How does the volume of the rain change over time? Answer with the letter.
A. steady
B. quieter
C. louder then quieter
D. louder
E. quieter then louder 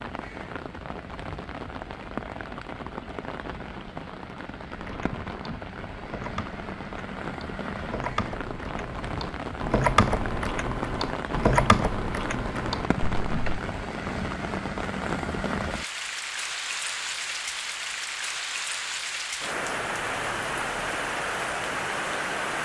D.